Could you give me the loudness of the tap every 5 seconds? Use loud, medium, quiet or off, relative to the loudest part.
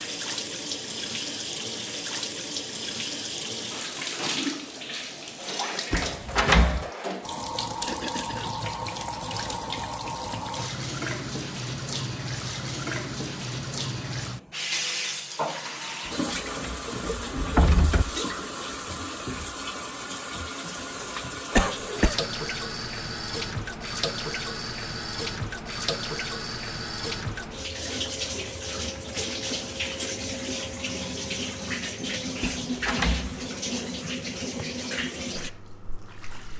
loud, loud, loud, loud, loud, loud, loud, medium.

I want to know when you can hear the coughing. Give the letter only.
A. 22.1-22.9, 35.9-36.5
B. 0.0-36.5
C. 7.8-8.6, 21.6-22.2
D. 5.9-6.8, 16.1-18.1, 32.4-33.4
C.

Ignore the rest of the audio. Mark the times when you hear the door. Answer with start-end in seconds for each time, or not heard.
5.9-6.8, 16.1-18.1, 32.4-33.4.